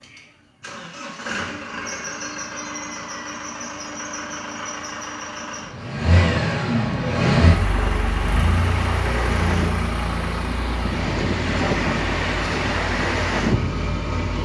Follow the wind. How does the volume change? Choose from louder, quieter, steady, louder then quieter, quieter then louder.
louder.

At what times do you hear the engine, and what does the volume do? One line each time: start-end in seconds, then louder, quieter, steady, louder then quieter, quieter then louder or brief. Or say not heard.
0.0-14.4 louder then quieter.